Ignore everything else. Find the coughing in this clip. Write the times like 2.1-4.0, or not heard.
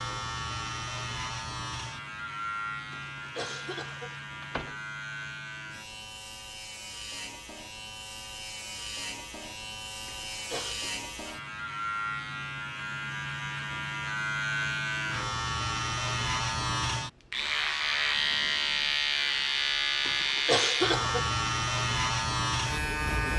2.9-4.2, 10.1-10.9, 20.1-21.2.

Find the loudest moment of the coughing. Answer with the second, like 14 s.
21 s.